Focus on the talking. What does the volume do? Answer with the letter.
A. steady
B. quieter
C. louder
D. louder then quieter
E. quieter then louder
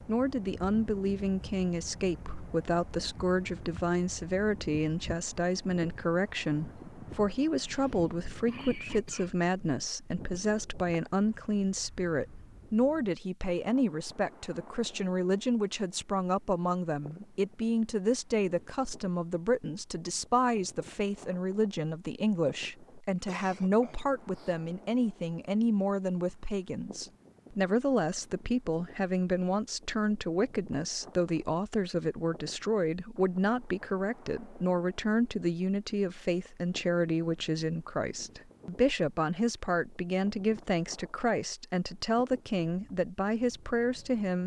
A.